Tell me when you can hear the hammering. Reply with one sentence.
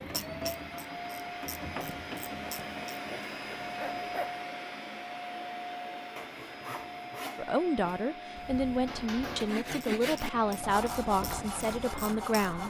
The hammering can be heard from 8.8 to 9.7 s.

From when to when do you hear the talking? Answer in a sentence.
You can hear the talking from 7.3 to 12.6 s.